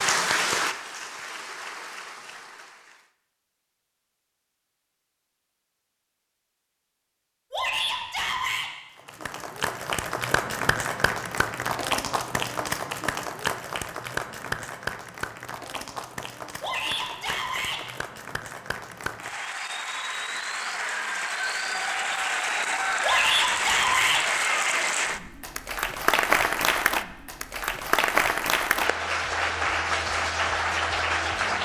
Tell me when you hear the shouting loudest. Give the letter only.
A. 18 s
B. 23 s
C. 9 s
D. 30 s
B.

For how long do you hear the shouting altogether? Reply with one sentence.
The shouting can be heard for 4 seconds in total.